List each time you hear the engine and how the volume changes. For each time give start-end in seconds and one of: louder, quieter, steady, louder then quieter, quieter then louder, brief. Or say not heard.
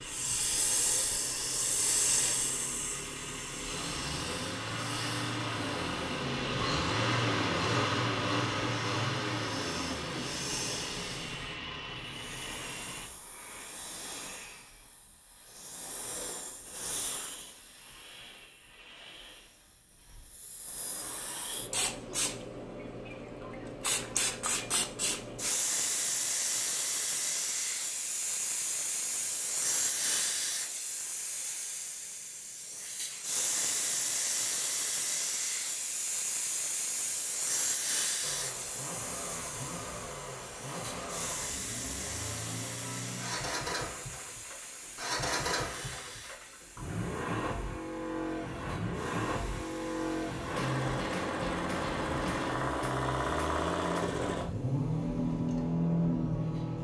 0.0-13.1 louder then quieter
38.2-56.8 louder.